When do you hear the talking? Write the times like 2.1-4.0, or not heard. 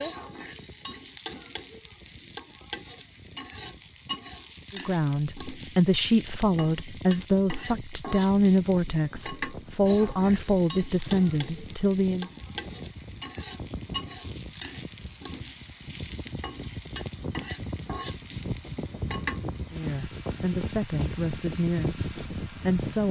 4.7-12.3, 19.7-23.0.